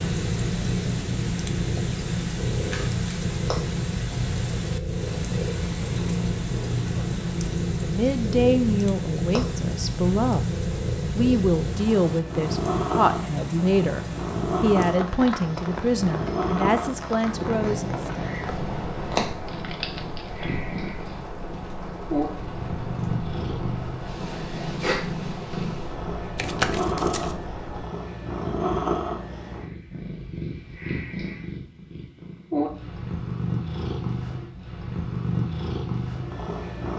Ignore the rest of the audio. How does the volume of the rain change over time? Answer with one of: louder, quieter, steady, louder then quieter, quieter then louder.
quieter.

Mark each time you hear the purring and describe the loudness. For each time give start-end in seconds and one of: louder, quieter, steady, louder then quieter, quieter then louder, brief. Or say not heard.
0.0-36.9 steady.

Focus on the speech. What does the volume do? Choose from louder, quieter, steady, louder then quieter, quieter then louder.
steady.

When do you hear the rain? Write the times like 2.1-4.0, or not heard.
0.0-27.9.